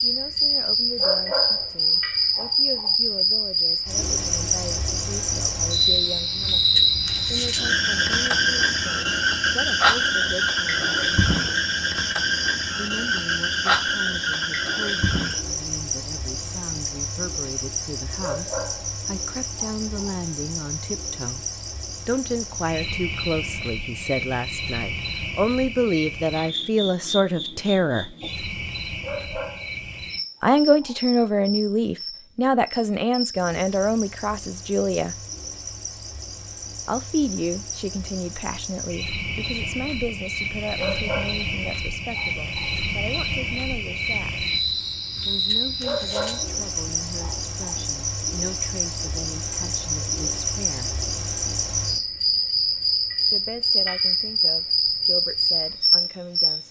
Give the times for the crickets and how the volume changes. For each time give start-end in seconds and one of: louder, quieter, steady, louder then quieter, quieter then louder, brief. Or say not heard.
0.0-56.6 quieter then louder.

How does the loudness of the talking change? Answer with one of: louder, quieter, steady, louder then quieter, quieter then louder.
louder then quieter.